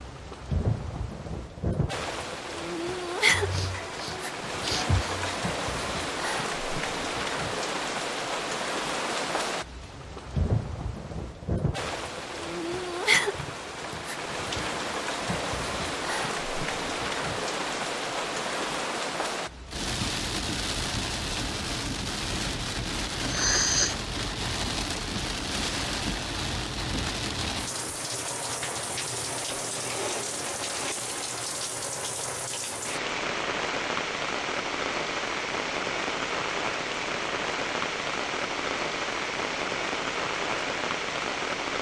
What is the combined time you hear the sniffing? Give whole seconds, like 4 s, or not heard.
3 s.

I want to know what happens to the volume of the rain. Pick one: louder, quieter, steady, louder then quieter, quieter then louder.
steady.